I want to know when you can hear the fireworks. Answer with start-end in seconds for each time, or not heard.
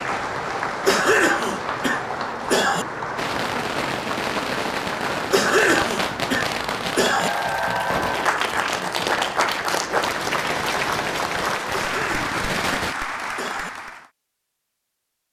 3.1-12.9.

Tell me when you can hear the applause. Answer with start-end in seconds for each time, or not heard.
0.0-14.1.